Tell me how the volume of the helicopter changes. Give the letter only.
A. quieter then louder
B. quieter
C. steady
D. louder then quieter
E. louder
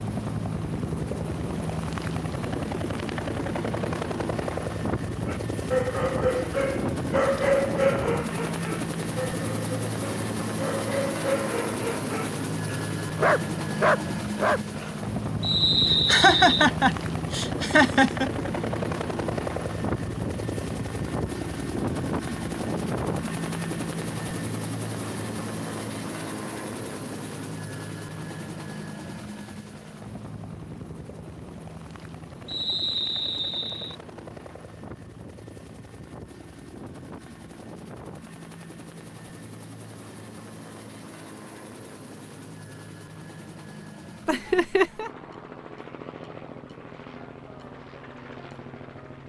B.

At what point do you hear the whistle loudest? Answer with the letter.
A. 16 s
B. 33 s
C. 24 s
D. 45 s
A.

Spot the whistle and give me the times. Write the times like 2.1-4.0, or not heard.
15.4-16.6, 32.5-34.0.